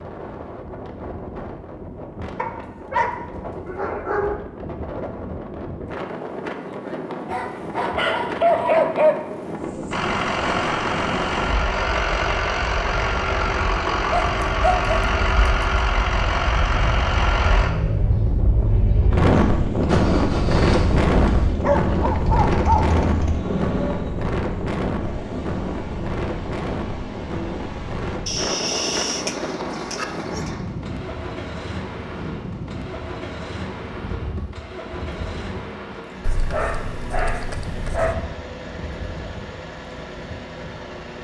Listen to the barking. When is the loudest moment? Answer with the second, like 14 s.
9 s.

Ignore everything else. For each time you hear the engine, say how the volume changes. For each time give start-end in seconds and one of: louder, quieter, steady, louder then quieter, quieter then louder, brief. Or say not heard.
9.9-41.1 quieter.